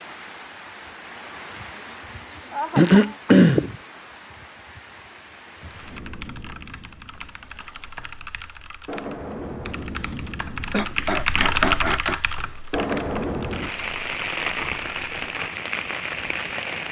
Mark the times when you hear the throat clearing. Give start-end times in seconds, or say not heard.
2.8-3.8, 10.7-12.2.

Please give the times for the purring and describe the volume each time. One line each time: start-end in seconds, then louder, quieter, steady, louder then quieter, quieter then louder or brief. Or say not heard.
not heard.